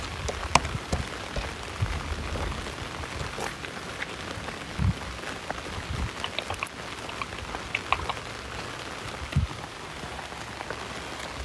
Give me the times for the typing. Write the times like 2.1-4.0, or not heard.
0.2-2.7, 6.2-8.2.